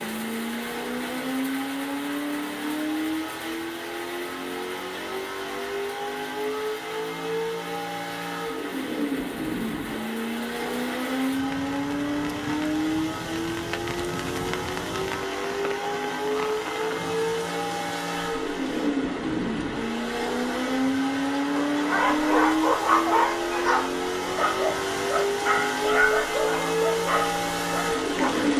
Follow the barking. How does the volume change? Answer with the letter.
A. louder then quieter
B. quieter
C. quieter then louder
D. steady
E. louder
B.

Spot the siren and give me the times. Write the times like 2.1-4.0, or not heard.
not heard.